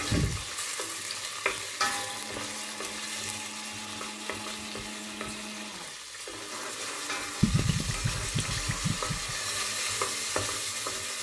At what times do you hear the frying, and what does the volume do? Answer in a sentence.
You can hear the frying from 0.0 to 11.1 s, getting quieter then louder.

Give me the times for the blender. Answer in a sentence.
You can hear the blender from 2.1 to 11.1 s.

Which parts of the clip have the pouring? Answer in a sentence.
You can hear the pouring from 7.4 to 9.3 s.